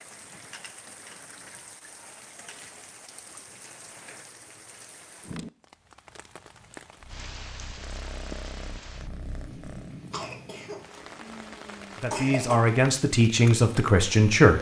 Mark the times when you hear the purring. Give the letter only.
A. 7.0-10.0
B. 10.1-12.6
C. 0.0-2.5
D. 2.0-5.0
A.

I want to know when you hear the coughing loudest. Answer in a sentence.
The volume of the coughing peaks at 12 seconds.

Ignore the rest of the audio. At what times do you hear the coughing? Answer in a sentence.
The coughing can be heard from 10.1 to 12.6 s.